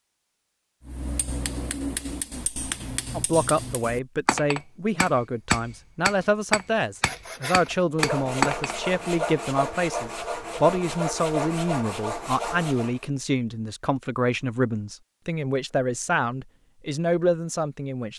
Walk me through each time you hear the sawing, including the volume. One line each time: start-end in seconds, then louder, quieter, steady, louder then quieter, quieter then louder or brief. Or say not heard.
7.0-13.0 steady.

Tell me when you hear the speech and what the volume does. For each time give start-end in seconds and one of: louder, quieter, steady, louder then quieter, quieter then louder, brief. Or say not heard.
3.1-18.1 steady.